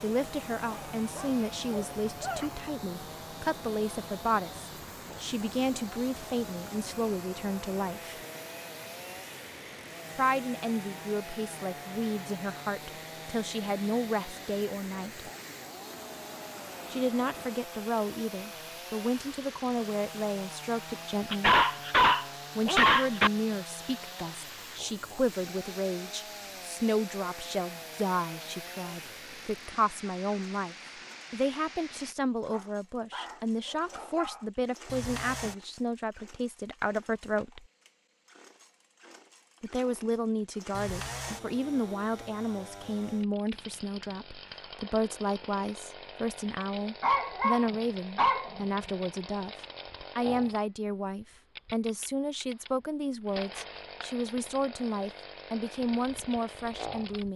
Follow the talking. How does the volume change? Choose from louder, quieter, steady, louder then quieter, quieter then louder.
steady.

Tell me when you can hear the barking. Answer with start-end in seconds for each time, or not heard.
0.7-2.5, 21.3-23.3, 32.5-34.5, 47.0-48.6.